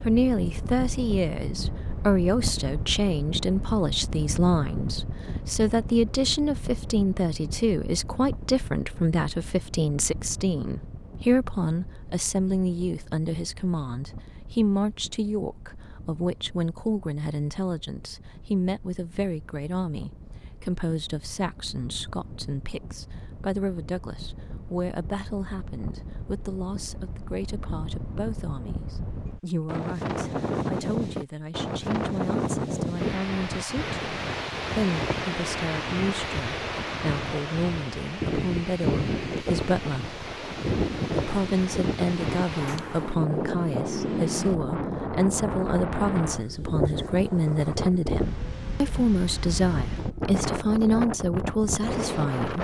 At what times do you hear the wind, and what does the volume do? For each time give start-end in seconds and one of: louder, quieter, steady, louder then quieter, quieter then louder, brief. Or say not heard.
0.0-52.5 quieter then louder.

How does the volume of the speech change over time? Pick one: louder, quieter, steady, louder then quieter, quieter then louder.
quieter then louder.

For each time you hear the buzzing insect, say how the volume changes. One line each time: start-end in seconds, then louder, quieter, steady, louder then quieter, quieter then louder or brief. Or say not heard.
not heard.